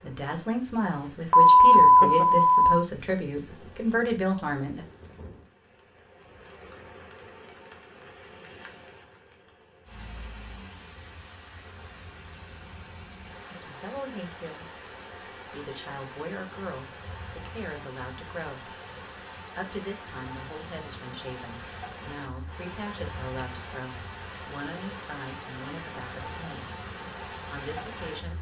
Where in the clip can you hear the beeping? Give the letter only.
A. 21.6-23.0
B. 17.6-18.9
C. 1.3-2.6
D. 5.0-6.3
C.